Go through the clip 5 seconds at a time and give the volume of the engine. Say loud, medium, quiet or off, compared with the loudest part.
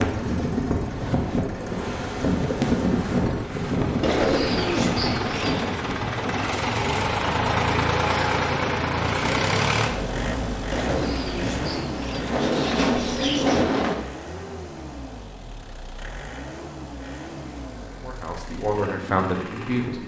medium, loud, medium, quiet.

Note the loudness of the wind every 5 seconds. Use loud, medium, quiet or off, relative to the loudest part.
loud, medium, loud, off.